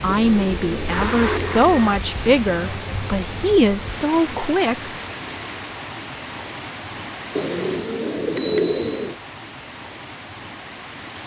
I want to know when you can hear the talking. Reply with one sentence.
The talking can be heard from 0.0 to 4.9 s.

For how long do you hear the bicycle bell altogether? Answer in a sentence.
You can hear the bicycle bell for 2 seconds altogether.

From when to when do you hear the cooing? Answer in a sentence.
The cooing can be heard from 0.1 to 1.9 s and from 7.3 to 9.2 s.